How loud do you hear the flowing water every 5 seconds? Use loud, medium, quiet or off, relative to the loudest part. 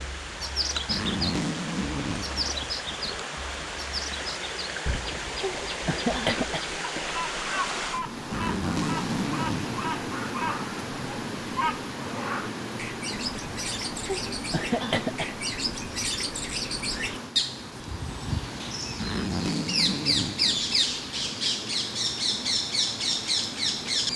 loud, loud, loud, medium, medium.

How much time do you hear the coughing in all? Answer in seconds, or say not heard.
3 s.